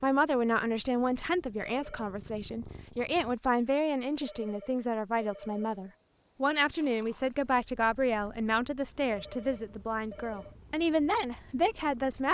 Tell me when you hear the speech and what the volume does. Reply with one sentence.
The speech can be heard from 0.0 to 12.2 s, at a steady volume.